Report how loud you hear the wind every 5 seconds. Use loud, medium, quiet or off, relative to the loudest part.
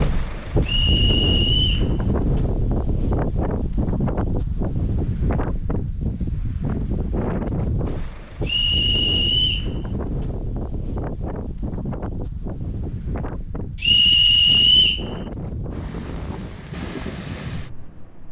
loud, loud, medium, medium.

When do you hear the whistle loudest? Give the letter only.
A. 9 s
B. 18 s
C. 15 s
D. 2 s
C.